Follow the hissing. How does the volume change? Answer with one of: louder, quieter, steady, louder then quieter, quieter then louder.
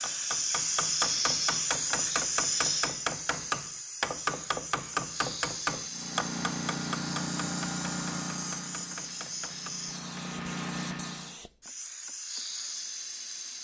quieter.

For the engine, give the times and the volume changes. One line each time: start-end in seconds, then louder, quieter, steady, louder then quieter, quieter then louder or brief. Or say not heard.
5.8-11.4 quieter then louder.